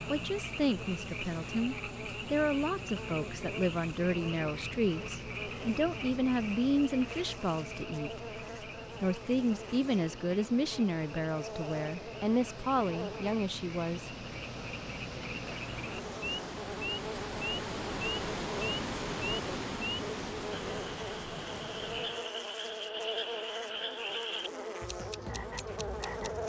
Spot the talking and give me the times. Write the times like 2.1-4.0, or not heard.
0.1-8.4, 9.0-14.1.